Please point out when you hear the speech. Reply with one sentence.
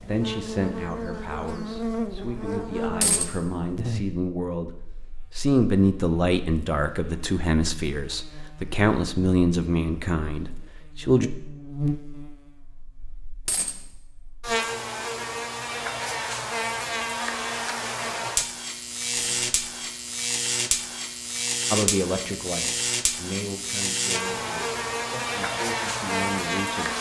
The speech can be heard from 0.0 to 11.3 s and from 21.7 to 26.9 s.